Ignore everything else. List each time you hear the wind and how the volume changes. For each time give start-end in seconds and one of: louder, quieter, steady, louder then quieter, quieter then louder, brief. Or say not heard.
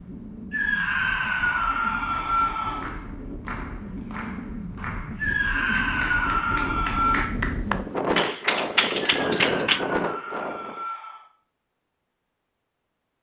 0.0-10.8 louder.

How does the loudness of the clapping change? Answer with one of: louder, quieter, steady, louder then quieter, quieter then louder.
louder.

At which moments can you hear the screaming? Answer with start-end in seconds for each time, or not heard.
0.5-2.9, 5.2-7.2, 9.2-11.2.